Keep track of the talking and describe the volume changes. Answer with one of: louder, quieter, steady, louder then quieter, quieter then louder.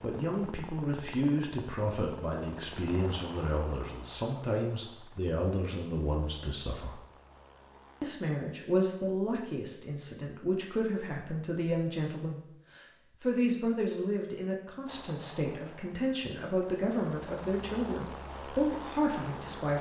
steady.